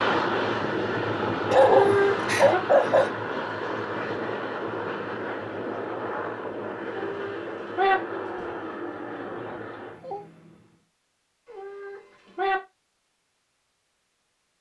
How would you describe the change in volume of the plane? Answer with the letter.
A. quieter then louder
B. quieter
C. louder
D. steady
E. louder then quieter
B.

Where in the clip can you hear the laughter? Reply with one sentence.
The laughter can't be heard in this clip.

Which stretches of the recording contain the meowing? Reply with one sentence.
The meowing can be heard from 1.6 to 2.6 s, from 6.8 to 8.0 s and from 11.5 to 12.6 s.